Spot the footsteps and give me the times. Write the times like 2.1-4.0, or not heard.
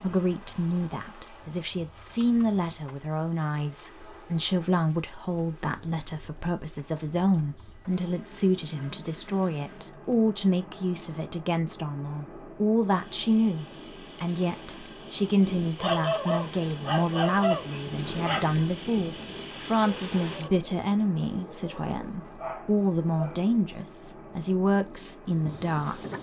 not heard.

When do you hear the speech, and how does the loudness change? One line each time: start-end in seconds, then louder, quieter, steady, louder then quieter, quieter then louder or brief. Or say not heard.
0.0-26.0 steady.